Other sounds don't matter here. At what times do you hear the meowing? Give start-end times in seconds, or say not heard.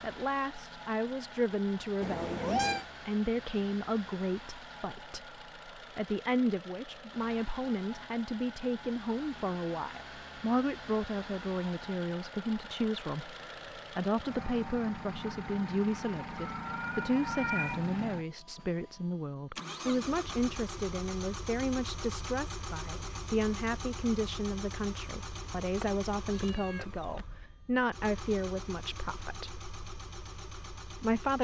2.0-2.9, 16.4-17.9, 25.8-27.2.